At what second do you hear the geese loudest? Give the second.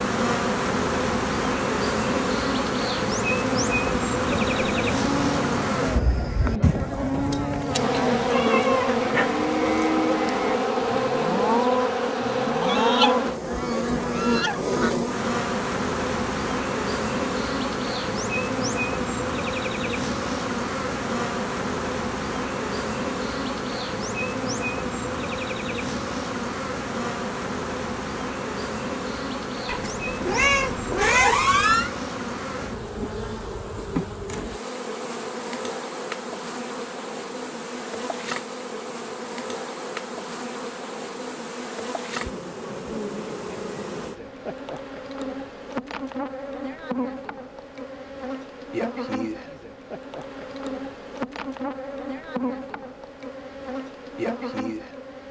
13 s.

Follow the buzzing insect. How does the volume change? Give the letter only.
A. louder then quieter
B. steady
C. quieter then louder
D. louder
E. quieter
E.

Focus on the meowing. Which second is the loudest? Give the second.
31 s.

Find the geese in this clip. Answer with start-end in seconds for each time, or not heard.
12.6-15.1.